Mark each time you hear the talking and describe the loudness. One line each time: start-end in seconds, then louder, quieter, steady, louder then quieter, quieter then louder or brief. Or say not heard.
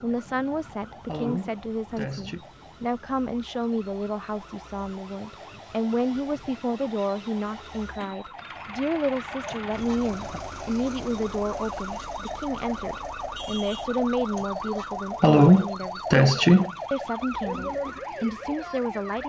0.0-19.2 steady.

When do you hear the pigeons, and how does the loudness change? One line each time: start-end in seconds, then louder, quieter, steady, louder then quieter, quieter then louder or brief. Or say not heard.
not heard.